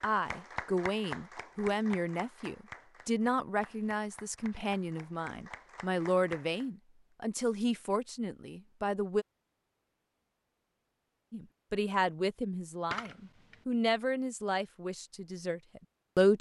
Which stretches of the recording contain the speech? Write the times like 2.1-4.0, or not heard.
0.0-9.2, 11.3-16.3.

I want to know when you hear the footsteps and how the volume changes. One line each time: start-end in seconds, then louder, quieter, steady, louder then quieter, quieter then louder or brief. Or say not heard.
not heard.